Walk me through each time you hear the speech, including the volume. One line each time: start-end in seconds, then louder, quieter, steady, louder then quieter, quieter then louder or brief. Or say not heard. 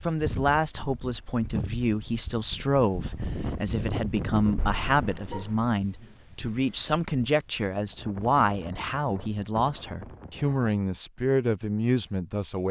0.0-12.6 steady.